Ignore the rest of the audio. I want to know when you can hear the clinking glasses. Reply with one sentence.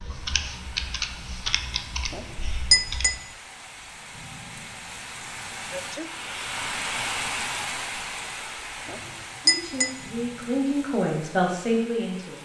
The clinking glasses can be heard from 2.1 to 3.1 s and from 8.8 to 9.9 s.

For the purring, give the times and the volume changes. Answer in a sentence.
The purring can't be heard in this clip.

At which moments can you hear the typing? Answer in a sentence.
You can hear the typing from 0.0 to 3.2 s.